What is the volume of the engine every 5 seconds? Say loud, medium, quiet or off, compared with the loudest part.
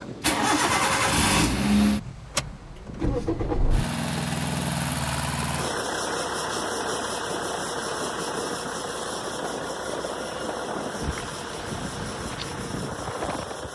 loud, medium, medium.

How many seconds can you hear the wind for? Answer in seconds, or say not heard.
14 s.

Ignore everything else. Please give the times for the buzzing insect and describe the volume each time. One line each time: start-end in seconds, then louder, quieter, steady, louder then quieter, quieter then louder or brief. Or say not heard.
not heard.